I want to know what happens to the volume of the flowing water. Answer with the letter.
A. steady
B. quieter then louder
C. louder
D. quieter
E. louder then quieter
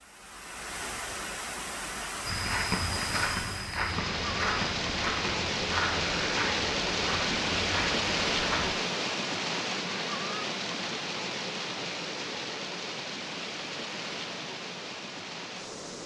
E.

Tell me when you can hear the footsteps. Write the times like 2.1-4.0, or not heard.
2.2-8.8.